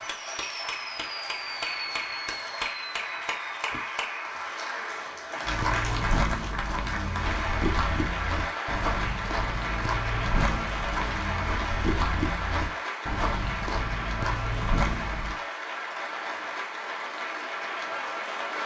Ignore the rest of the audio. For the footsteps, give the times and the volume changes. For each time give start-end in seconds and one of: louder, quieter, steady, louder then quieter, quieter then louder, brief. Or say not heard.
5.5-15.3 steady.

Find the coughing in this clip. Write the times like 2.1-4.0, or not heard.
not heard.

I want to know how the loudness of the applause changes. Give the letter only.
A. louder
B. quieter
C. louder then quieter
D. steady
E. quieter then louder
D.